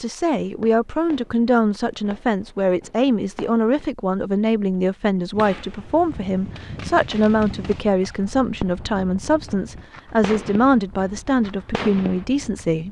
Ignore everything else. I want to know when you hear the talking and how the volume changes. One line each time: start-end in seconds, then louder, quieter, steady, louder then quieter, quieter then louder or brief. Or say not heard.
0.0-12.8 steady.